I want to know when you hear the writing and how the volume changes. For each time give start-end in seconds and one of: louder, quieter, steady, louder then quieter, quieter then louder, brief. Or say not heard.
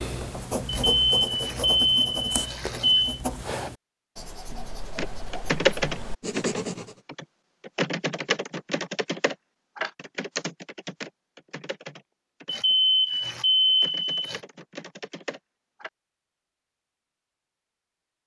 0.0-7.0 quieter then louder.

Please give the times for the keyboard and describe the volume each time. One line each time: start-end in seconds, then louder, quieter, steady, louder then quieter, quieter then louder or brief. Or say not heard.
5.0-15.9 quieter.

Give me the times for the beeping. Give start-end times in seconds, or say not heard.
0.7-3.2, 12.4-14.4.